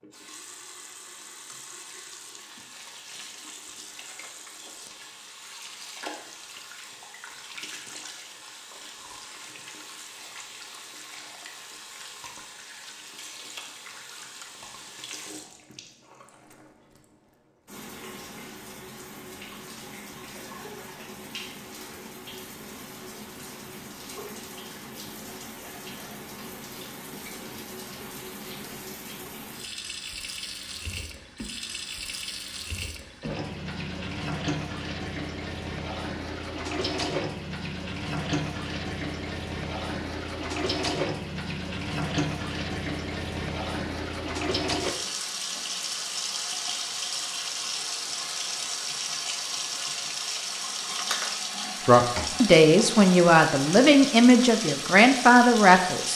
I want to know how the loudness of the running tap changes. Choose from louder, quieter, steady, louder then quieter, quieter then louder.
louder.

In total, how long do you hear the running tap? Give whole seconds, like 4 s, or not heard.
56 s.